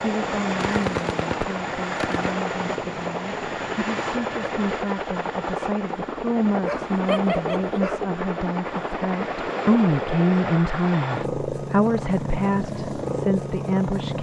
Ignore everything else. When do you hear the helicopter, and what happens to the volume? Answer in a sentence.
The helicopter can be heard from 0.0 to 14.1 s, at a steady volume.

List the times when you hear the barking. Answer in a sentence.
You can hear the barking from 6.6 to 8.1 s.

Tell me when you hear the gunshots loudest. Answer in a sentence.
The loudest moment of the gunshots is at 1 second.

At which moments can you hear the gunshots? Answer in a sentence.
You can hear the gunshots from 0.6 to 2.4 s.